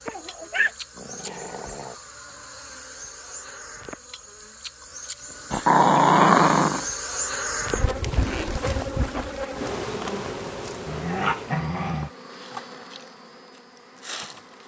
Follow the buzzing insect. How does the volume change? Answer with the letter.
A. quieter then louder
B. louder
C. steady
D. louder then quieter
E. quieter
D.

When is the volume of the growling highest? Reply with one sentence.
The loudest moment of the growling is at 6 seconds.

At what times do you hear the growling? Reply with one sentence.
The growling can be heard from 0.1 to 1.9 s, from 5.5 to 6.8 s and from 10.8 to 12.1 s.